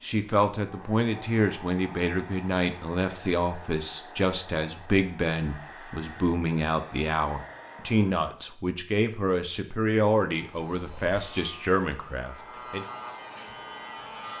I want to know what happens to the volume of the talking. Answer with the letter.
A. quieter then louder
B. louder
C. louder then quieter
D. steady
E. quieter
D.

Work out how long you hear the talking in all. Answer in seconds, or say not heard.
13 s.